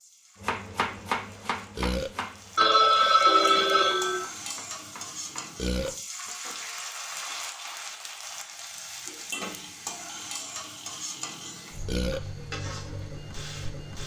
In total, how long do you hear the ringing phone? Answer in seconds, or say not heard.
4 s.